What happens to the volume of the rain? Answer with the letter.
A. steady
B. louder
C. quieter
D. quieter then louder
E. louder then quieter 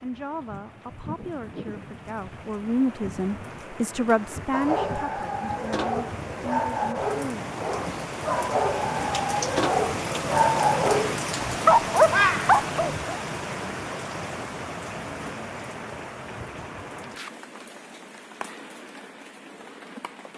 E.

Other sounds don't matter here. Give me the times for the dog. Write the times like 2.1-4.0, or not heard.
4.5-12.9.